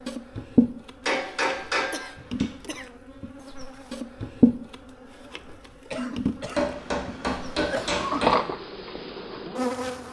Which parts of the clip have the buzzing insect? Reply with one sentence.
The buzzing insect can be heard from 0.0 to 10.0 s.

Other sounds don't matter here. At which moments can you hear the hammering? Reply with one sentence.
The hammering can be heard from 1.1 to 2.5 s and from 6.5 to 8.4 s.